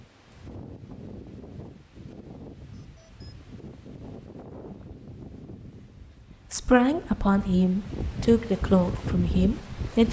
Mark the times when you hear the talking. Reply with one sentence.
The talking can be heard from 6.5 to 10.0 s.